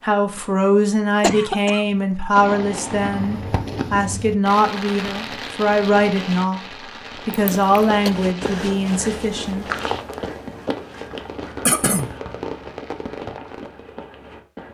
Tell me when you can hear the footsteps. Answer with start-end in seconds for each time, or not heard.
7.2-14.7.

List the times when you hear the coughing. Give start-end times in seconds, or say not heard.
1.2-1.9, 7.3-8.1, 11.7-12.1.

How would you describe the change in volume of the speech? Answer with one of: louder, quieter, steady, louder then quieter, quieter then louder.
steady.